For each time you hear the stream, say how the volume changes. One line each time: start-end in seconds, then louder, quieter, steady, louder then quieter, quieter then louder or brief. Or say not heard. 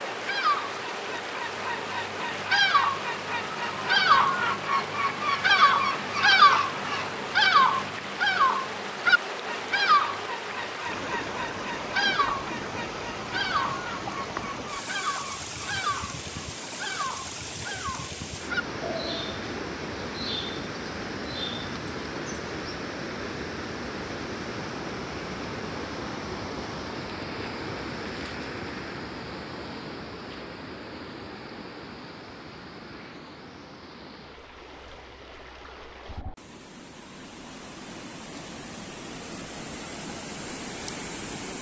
0.0-41.5 quieter.